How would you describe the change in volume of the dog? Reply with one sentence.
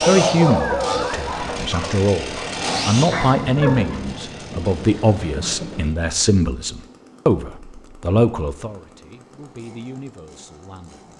The volume of the dog goes down, then up.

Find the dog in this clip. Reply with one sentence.
The dog can be heard from 0.0 to 4.0 s.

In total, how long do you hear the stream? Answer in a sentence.
You can't hear the stream here.